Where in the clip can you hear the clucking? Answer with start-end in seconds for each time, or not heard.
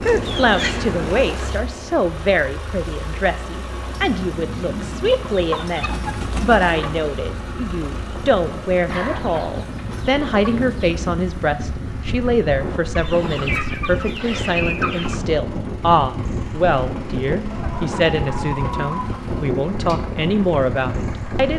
0.0-1.6, 5.3-6.9, 8.8-10.8, 12.9-15.2, 17.5-19.5.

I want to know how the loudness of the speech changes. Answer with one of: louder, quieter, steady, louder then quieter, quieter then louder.
steady.